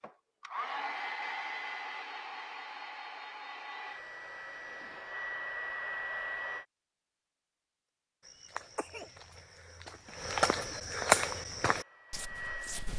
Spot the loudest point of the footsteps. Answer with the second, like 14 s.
11 s.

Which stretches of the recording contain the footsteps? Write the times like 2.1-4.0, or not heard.
8.2-12.9.